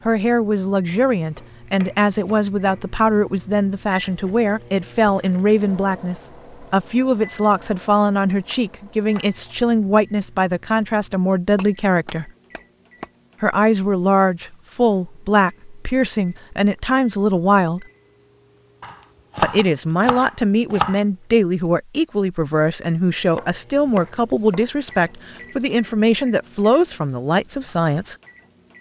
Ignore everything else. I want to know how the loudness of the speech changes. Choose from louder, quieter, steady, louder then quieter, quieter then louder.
steady.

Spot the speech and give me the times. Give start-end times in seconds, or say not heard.
0.1-12.3, 13.4-17.9, 19.4-28.1.